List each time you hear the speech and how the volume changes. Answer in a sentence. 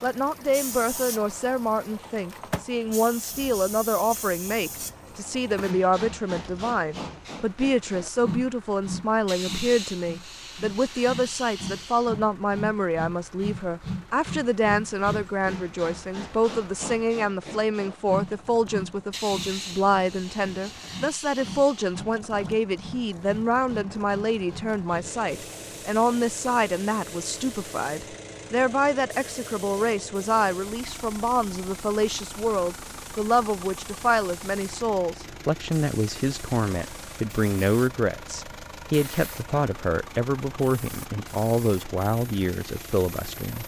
You can hear the speech from 0.0 to 43.6 s, at a steady volume.